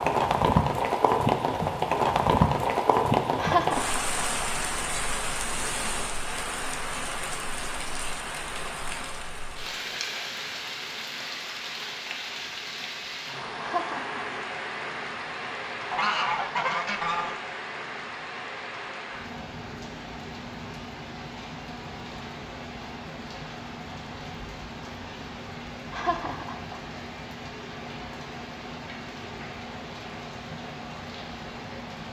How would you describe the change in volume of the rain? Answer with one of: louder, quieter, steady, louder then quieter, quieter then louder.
quieter.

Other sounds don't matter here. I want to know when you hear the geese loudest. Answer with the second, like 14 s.
16 s.